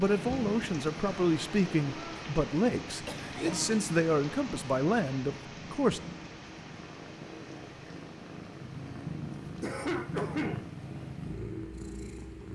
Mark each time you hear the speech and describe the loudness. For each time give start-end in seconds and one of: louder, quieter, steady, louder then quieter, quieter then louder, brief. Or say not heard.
0.0-6.0 steady.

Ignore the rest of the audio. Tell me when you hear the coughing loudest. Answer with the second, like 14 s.
10 s.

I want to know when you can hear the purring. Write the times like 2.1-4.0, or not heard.
0.0-12.5.